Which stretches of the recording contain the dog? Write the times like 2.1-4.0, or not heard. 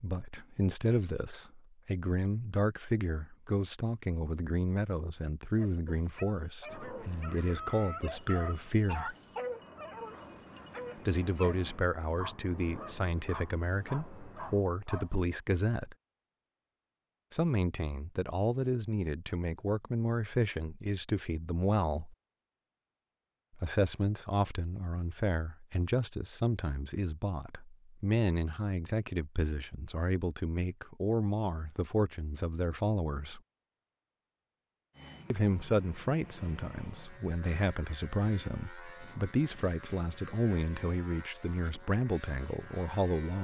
5.5-15.2.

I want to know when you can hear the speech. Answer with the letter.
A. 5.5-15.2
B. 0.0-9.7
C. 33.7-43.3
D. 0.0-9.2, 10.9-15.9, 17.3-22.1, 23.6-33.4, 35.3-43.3
D.